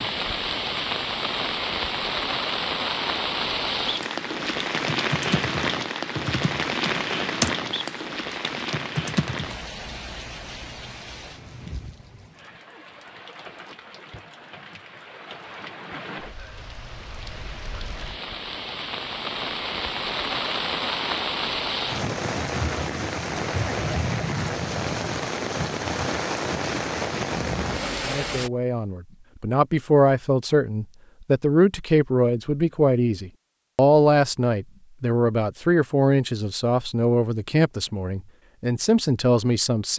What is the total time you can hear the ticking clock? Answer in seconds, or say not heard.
not heard.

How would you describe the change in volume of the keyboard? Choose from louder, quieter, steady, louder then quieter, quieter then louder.
louder then quieter.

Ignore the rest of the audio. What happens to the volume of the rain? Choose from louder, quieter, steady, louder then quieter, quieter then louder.
quieter then louder.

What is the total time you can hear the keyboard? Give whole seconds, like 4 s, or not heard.
6 s.